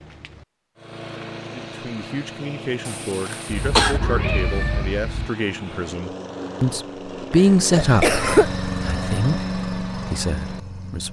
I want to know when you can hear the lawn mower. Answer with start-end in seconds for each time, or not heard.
0.0-11.0.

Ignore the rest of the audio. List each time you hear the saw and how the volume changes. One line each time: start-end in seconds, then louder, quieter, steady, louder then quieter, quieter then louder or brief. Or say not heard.
not heard.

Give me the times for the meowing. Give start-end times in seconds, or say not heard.
3.5-5.3.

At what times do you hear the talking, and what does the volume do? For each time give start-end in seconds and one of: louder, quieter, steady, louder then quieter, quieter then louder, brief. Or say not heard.
1.4-11.0 louder then quieter.